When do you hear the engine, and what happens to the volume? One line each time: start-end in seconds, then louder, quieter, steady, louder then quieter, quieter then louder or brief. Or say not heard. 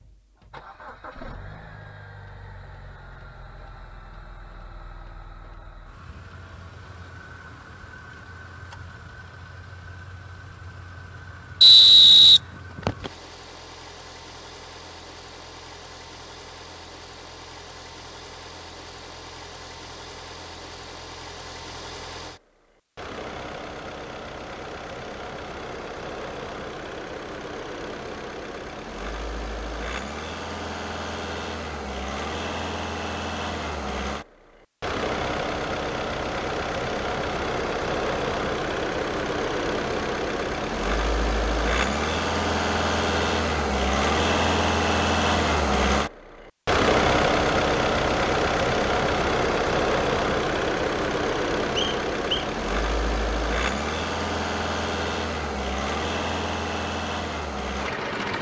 0.0-58.3 louder.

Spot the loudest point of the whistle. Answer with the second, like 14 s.
12 s.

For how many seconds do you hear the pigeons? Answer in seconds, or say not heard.
not heard.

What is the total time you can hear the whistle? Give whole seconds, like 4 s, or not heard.
2 s.